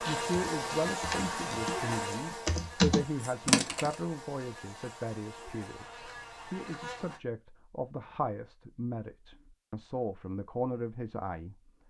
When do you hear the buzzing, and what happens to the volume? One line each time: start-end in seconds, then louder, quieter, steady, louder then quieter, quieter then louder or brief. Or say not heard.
0.0-7.2 quieter.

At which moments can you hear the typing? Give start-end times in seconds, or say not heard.
0.0-4.0.